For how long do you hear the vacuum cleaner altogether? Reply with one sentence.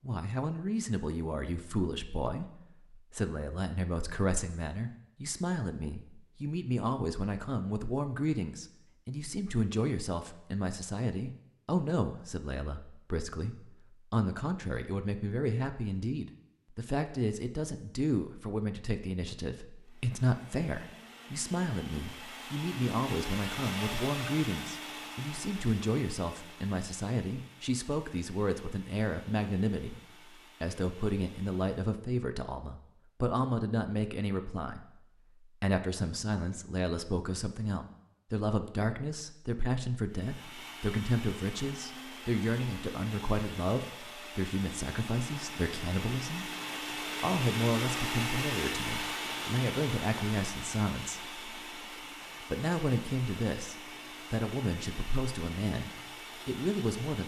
You can hear the vacuum cleaner for 29 seconds altogether.